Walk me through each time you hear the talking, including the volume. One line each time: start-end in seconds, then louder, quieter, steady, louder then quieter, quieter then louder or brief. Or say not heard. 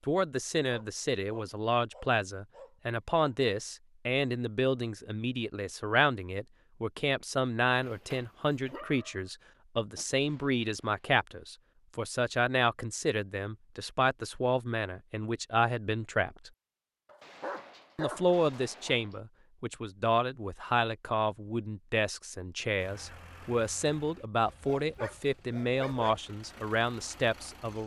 0.1-16.5 steady
17.9-27.8 steady.